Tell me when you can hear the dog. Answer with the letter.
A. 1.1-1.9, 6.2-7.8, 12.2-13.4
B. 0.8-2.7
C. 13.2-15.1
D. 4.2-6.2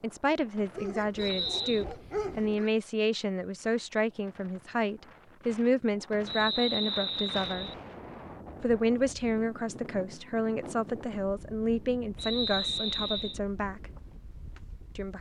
B.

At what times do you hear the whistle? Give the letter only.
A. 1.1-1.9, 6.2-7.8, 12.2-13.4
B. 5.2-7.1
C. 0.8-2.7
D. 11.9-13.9
A.